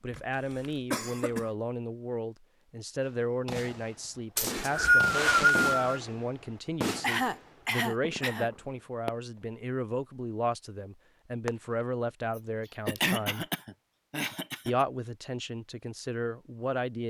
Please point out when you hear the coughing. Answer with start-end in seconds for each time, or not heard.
0.1-1.5, 7.0-8.5, 12.3-14.8.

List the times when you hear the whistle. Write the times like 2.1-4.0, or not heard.
4.3-6.0.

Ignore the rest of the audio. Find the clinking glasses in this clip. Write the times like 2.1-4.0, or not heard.
not heard.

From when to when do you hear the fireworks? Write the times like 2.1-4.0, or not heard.
3.0-9.6, 11.4-11.8.